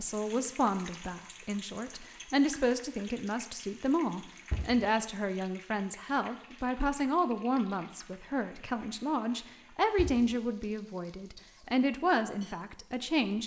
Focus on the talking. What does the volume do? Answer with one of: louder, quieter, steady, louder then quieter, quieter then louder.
steady.